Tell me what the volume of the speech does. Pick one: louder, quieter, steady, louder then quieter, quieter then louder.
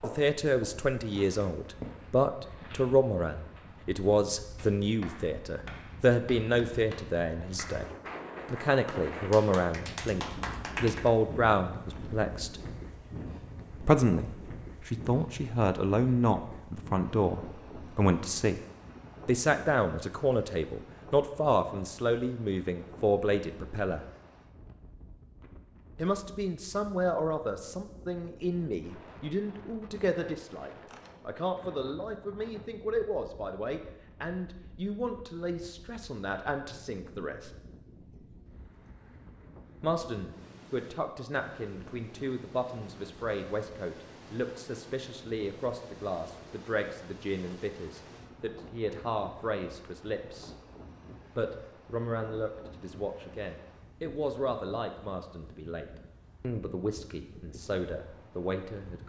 quieter.